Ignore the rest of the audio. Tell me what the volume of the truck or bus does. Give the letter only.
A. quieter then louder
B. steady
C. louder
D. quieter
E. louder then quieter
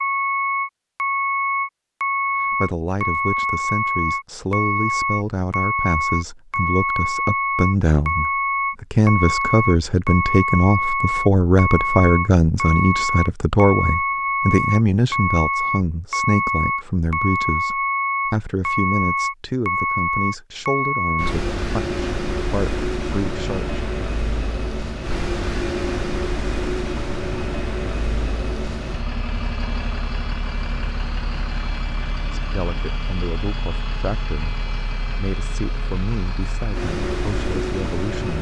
D.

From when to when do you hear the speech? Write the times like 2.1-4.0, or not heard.
2.5-23.8, 32.4-38.3.